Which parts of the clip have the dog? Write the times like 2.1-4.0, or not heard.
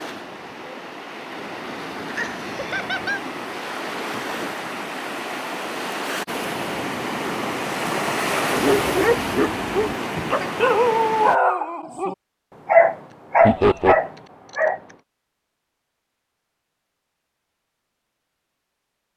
8.5-14.9.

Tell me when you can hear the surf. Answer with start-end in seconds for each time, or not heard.
0.0-11.4.